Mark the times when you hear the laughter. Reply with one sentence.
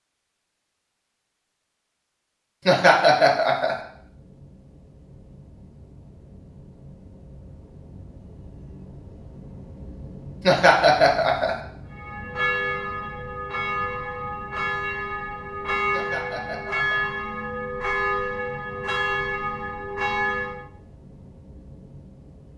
You can hear the laughter from 2.6 to 3.8 s, from 10.4 to 11.6 s and from 15.9 to 17.0 s.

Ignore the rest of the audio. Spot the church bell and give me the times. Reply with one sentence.
The church bell can be heard from 11.9 to 20.6 s.